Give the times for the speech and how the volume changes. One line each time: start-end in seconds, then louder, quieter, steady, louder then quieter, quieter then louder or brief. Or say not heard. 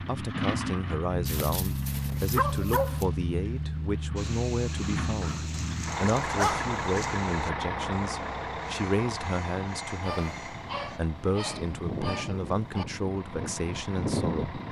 0.0-14.6 steady.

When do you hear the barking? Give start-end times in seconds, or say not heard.
1.2-3.0, 5.2-7.1, 10.0-12.8.